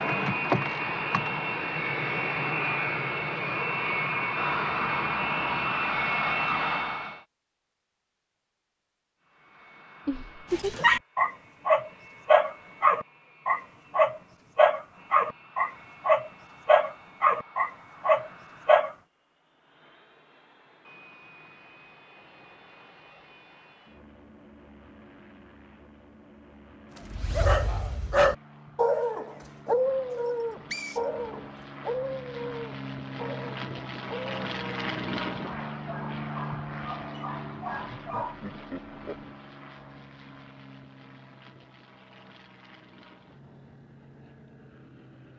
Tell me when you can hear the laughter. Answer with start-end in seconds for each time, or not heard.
10.1-10.9, 38.0-39.2.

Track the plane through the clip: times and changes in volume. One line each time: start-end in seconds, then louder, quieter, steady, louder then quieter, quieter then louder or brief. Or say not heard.
0.0-7.2 steady
9.2-45.3 louder then quieter.